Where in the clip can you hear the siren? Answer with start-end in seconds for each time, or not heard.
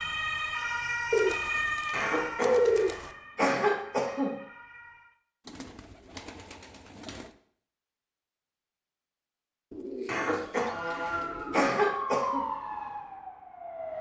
0.0-5.2, 10.6-13.9.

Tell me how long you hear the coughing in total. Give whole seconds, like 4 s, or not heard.
5 s.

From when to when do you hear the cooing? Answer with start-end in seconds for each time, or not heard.
1.1-3.1, 5.5-7.3, 9.7-11.8.